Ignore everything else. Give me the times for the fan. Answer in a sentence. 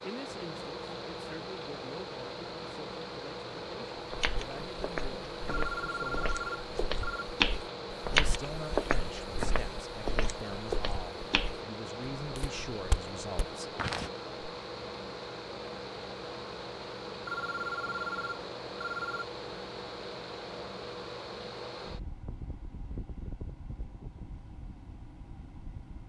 The fan can be heard from 0.0 to 26.0 s.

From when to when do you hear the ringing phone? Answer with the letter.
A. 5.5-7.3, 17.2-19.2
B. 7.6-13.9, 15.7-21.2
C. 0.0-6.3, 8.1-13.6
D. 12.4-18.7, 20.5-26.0
A.